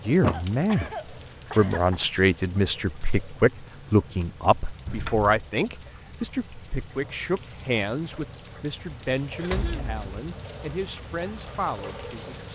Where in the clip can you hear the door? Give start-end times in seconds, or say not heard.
0.2-0.9, 4.8-5.3, 9.4-10.2.